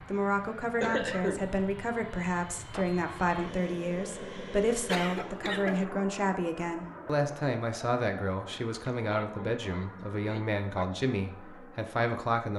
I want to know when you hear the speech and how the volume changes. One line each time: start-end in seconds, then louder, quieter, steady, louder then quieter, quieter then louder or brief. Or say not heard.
0.1-12.5 steady.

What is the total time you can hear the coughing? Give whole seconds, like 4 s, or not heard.
4 s.